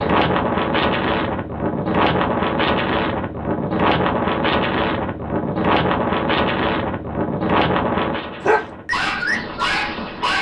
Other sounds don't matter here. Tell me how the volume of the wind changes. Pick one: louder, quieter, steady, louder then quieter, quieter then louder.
quieter.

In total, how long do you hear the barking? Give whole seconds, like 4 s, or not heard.
2 s.